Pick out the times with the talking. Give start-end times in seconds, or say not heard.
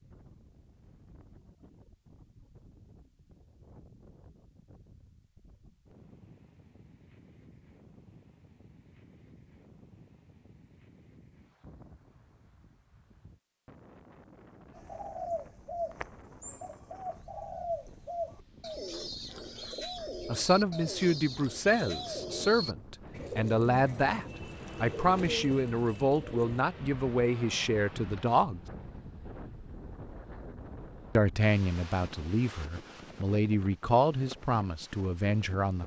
20.2-28.6, 31.1-35.8.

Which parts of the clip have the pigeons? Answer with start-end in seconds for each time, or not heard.
14.8-26.6.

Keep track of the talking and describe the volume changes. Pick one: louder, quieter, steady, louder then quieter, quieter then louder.
steady.